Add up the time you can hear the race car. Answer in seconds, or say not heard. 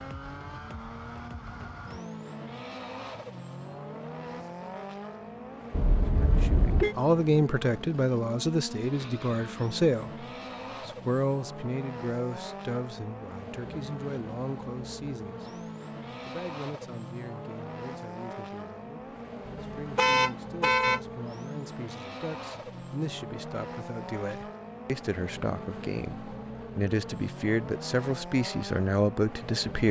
30 s.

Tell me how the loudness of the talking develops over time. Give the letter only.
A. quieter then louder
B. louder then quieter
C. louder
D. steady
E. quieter
A.